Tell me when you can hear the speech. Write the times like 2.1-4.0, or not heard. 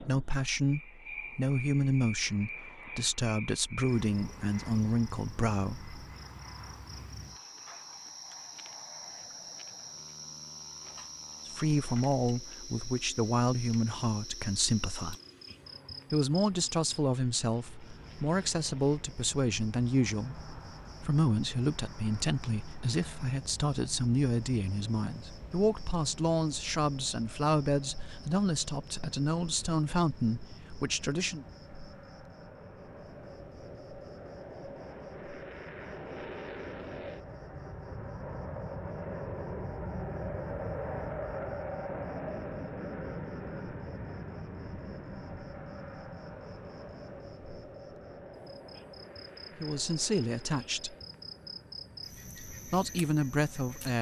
0.0-6.0, 11.4-15.2, 16.1-20.4, 21.0-31.4, 49.6-51.0, 52.4-53.9.